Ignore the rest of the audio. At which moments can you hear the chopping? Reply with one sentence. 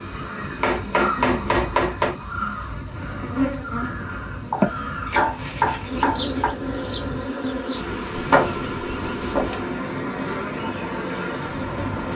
You can hear the chopping from 0.6 to 2.1 s, from 4.5 to 6.5 s and from 8.2 to 9.4 s.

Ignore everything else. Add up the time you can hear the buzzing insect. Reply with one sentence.
You can hear the buzzing insect for 12 seconds altogether.